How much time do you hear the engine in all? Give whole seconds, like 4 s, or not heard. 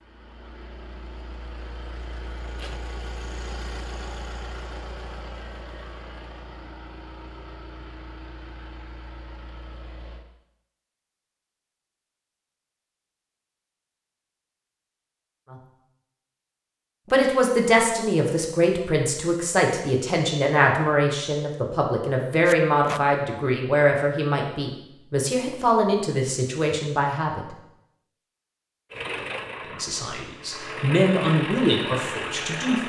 14 s.